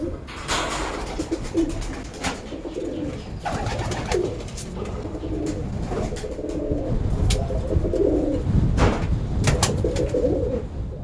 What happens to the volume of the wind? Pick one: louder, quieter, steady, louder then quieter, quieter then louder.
louder.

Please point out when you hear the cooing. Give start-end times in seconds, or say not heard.
0.0-11.0.